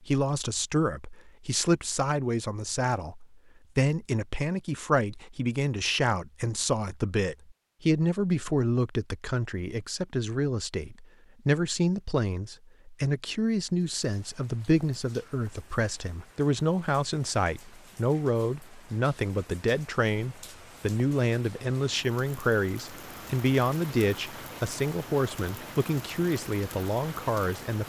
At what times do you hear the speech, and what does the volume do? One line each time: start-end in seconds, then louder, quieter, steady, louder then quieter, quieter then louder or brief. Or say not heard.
0.0-27.8 steady.